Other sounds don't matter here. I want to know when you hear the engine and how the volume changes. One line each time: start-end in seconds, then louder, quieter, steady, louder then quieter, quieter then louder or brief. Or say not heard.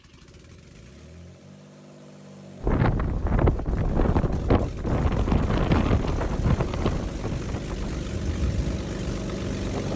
0.0-9.9 louder.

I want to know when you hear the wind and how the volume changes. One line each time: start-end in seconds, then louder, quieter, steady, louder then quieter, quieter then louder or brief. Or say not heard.
2.6-9.9 quieter.